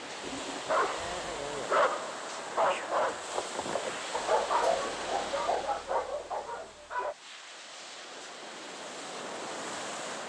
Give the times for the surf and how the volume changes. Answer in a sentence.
You can hear the surf from 0.0 to 10.2 s, getting quieter then louder.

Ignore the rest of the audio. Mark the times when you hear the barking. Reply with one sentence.
You can hear the barking from 0.6 to 7.2 s.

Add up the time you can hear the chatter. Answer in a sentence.
The chatter can't be heard in this clip.